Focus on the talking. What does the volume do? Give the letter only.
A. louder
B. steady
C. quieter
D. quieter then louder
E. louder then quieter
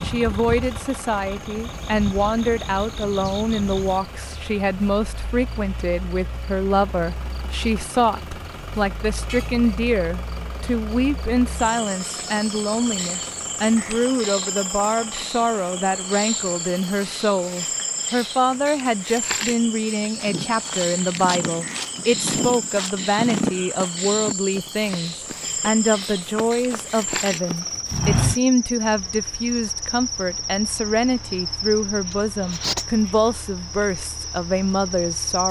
B.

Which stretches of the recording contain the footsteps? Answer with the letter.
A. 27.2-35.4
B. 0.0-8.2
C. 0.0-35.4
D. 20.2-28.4
D.